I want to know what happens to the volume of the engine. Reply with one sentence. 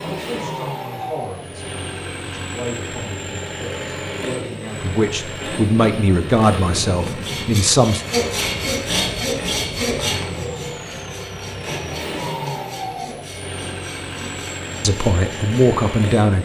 The volume of the engine stays about the same.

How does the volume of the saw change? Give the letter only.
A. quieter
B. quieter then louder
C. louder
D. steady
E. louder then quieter
A.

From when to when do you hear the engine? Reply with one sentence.
The engine can be heard from 0.0 to 16.4 s.